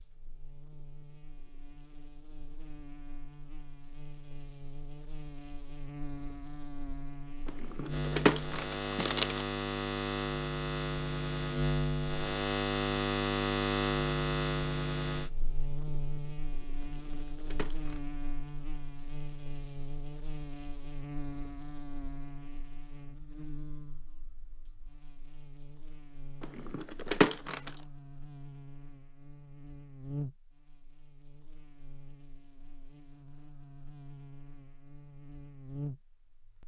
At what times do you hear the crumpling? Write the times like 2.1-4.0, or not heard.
7.5-9.4, 16.8-18.0, 26.4-27.7.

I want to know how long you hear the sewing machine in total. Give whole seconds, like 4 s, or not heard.
not heard.